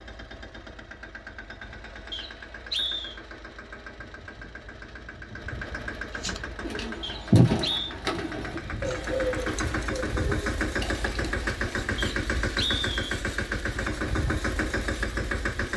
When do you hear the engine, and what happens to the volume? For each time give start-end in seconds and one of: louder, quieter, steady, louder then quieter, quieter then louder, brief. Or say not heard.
0.0-15.7 louder.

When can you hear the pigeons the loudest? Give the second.
7 s.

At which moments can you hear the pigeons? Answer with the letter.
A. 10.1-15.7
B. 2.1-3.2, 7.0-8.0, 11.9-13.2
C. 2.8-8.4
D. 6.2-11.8
D.